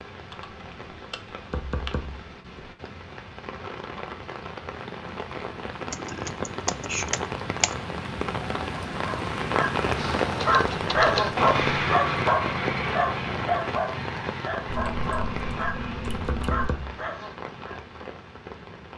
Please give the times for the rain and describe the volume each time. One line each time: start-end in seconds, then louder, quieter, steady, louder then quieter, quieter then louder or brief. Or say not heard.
0.0-18.9 louder then quieter.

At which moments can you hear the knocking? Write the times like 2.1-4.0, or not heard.
1.5-2.8, 16.2-17.0.